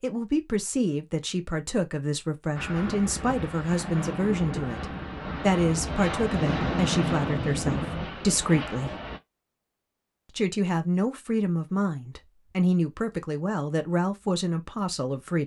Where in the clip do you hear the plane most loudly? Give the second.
7 s.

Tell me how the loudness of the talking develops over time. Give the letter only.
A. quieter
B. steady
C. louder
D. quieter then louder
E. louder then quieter
B.